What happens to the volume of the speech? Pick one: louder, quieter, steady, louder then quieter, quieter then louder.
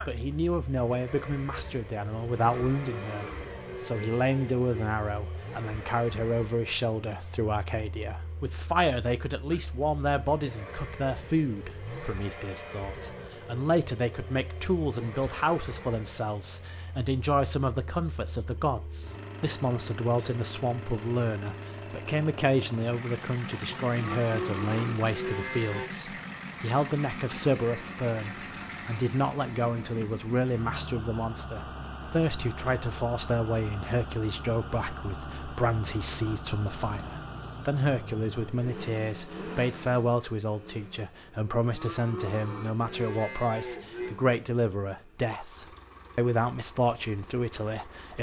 steady.